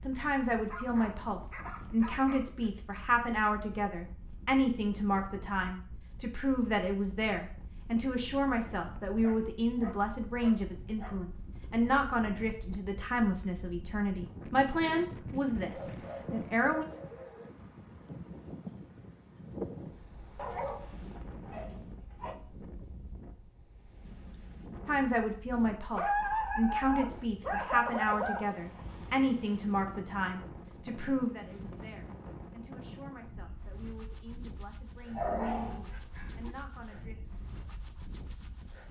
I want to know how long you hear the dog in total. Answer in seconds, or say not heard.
12 s.